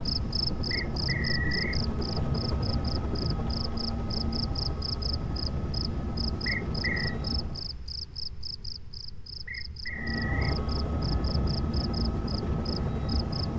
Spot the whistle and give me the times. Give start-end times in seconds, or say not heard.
0.7-1.8, 6.5-7.2, 9.4-10.6.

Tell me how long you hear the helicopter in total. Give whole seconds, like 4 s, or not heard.
11 s.